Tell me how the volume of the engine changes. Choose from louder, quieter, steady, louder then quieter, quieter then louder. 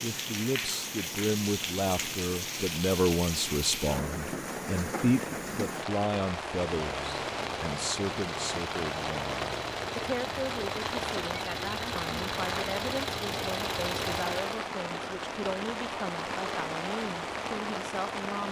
louder.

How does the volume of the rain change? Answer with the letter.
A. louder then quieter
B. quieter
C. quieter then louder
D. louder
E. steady
E.